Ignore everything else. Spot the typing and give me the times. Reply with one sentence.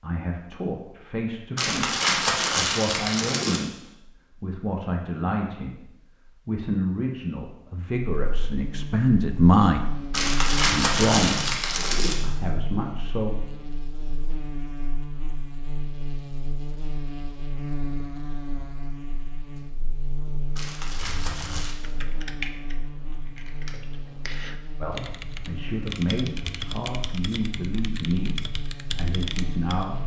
The typing can be heard from 20.9 to 29.9 s.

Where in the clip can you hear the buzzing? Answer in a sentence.
The buzzing can be heard from 8.1 to 30.0 s.